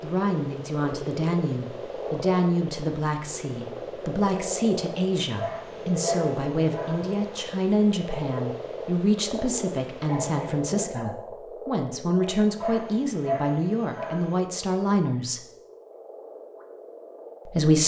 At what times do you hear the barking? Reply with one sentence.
The barking can be heard from 5.3 to 7.2 s and from 12.6 to 14.4 s.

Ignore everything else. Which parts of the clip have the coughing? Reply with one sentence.
You can hear the coughing from 10.1 to 11.2 s.